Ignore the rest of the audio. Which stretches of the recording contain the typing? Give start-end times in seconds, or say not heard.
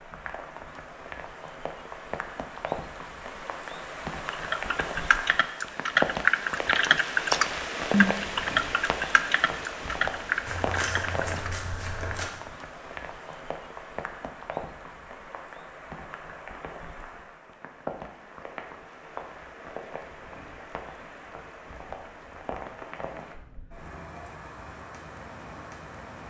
4.3-11.5.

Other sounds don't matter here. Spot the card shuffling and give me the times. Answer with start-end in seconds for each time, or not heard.
10.4-12.3.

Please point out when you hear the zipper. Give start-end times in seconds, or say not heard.
not heard.